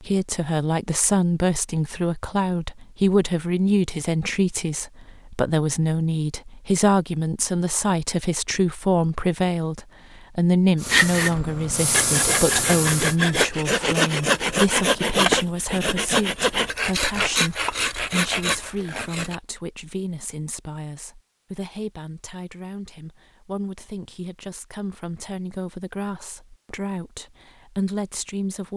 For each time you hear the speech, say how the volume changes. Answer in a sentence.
You can hear the speech from 0.0 to 28.7 s, getting quieter.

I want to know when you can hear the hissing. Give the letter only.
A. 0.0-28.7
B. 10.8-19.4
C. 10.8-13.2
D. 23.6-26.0
C.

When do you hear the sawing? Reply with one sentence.
The sawing can be heard from 10.8 to 19.4 s.